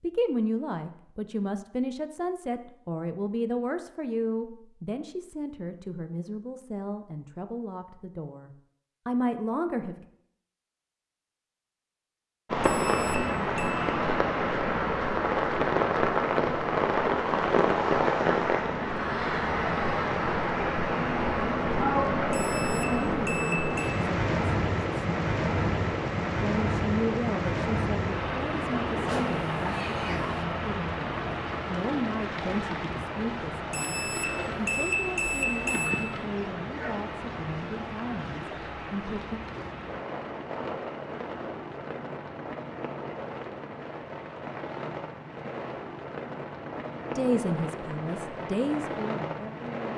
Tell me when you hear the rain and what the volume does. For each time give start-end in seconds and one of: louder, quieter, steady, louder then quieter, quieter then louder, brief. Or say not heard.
12.4-49.9 quieter.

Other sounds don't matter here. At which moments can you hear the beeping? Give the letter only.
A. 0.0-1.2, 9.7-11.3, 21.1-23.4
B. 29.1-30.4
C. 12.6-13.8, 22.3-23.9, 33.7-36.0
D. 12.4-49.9
C.